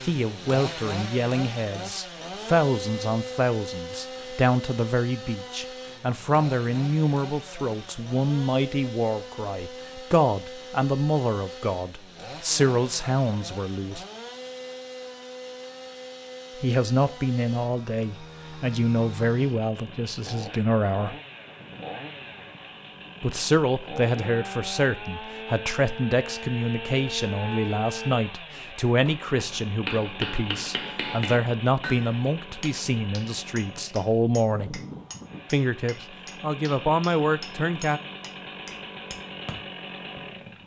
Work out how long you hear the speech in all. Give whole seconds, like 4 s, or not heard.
33 s.